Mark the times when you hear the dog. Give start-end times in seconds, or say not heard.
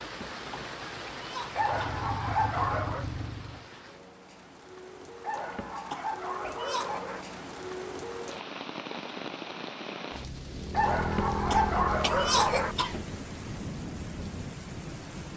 1.6-3.0, 5.2-7.2, 10.7-12.8.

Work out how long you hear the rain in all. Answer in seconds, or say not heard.
15 s.